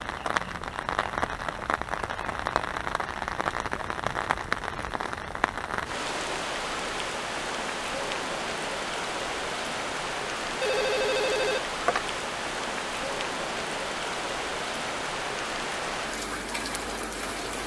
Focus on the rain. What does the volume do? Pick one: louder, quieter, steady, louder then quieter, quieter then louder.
steady.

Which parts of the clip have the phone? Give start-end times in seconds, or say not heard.
10.6-12.0.